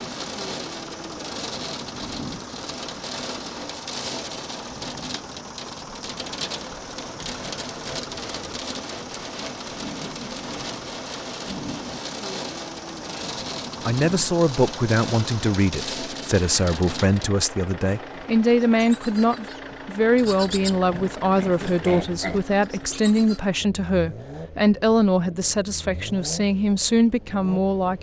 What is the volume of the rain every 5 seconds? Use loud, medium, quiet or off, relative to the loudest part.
loud, loud, loud, loud, off, off.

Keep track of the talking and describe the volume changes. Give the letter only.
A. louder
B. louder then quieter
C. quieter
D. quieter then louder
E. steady
E.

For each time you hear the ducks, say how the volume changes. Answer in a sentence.
The ducks can't be heard in this clip.